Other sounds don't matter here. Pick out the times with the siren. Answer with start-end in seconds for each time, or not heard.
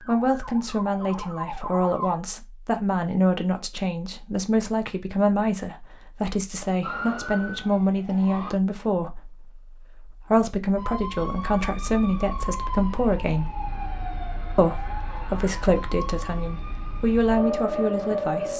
0.0-2.2, 6.8-8.6, 10.8-18.5.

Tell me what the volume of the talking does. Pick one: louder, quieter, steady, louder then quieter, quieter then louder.
steady.